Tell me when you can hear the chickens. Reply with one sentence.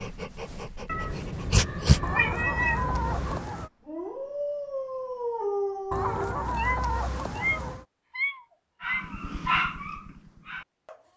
The chickens can be heard from 2.0 to 3.7 s and from 5.9 to 7.8 s.